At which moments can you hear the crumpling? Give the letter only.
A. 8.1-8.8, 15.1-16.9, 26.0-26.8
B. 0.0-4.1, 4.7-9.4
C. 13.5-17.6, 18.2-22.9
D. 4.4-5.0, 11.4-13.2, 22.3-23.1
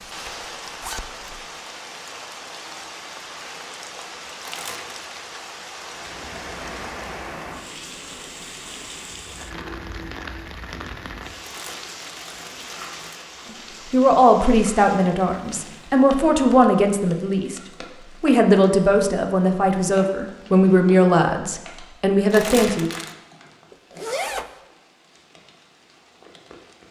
D.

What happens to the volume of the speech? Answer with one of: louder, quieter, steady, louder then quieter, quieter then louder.
steady.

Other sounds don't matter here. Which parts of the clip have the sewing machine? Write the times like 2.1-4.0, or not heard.
not heard.